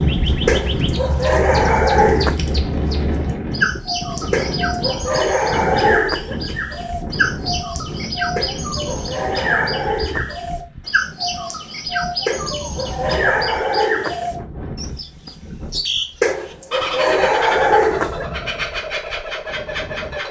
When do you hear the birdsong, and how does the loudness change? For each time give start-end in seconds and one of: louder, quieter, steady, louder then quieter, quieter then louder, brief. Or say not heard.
0.0-20.2 steady.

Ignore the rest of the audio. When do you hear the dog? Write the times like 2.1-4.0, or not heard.
0.5-2.4, 4.3-6.3, 8.3-10.3, 12.2-14.3, 16.2-18.2.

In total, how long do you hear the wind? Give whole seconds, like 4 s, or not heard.
20 s.